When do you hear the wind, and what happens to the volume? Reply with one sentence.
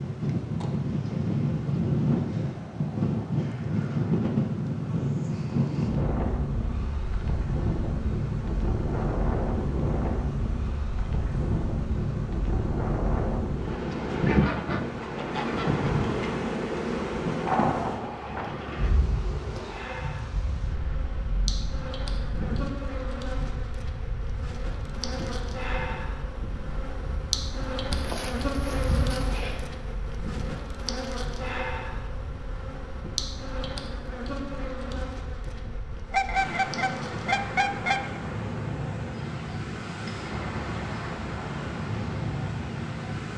You can hear the wind from 0.0 to 43.3 s, getting quieter then louder.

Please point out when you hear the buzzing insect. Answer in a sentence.
The buzzing insect can be heard from 0.0 to 43.1 s.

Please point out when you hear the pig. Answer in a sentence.
The pig can be heard from 27.9 to 29.6 s.